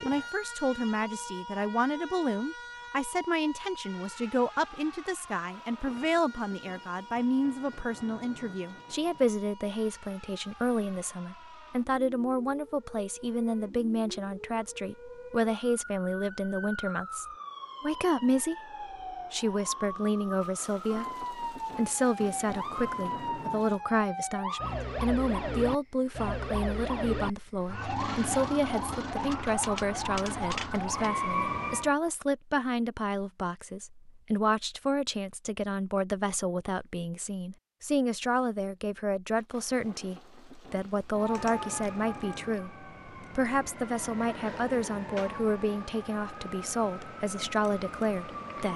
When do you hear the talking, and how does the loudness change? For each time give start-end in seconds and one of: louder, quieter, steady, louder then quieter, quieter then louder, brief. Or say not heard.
0.0-48.7 steady.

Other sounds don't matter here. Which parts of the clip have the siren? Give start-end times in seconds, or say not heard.
0.0-31.9, 41.1-48.7.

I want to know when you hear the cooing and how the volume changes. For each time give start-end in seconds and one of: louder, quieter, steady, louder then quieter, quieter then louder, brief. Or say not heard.
not heard.